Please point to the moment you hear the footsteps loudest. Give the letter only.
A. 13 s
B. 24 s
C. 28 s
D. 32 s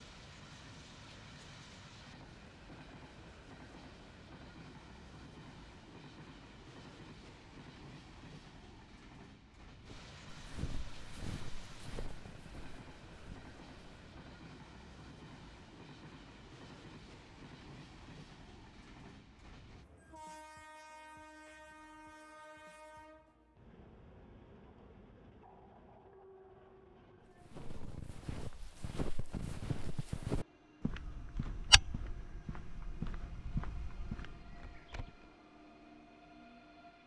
D.